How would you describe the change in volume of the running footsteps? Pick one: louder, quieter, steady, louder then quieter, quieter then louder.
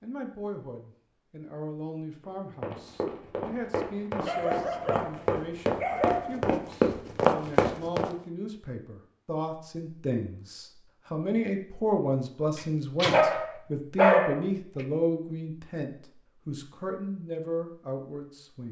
louder.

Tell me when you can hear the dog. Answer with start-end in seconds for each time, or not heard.
4.2-6.5, 13.0-14.4.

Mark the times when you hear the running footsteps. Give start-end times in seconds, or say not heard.
2.2-8.1.